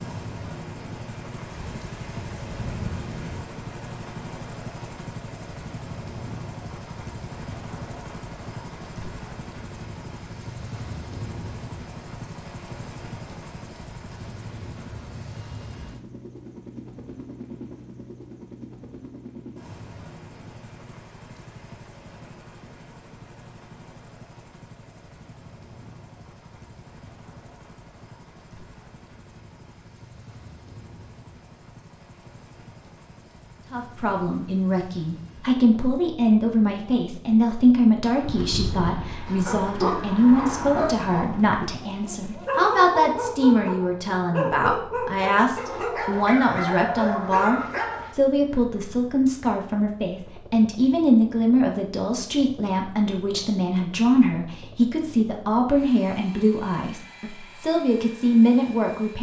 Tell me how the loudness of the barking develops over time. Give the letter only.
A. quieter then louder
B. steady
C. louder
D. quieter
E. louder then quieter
B.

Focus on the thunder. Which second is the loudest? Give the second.
3 s.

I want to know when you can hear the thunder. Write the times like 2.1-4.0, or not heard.
1.4-3.5.